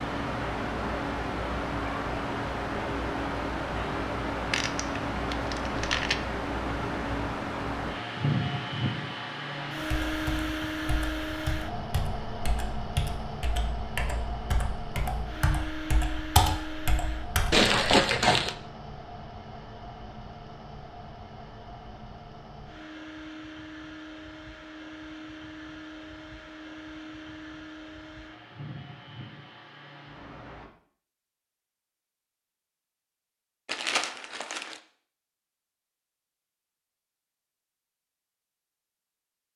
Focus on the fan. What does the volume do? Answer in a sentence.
The loudness of the fan goes down.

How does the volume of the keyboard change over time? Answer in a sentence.
The loudness of the keyboard goes up.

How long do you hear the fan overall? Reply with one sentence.
You can hear the fan for 31 seconds altogether.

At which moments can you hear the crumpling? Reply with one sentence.
You can hear the crumpling from 4.5 to 6.2 s, from 17.5 to 18.6 s and from 33.6 to 34.8 s.